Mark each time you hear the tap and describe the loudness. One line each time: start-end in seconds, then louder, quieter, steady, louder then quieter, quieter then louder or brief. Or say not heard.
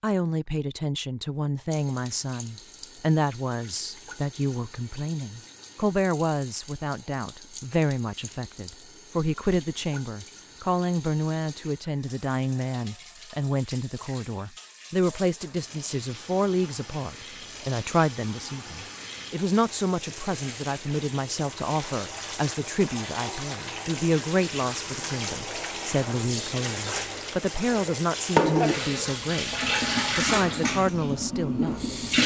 1.7-32.2 louder.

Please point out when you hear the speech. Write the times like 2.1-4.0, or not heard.
0.0-29.6, 30.1-31.9.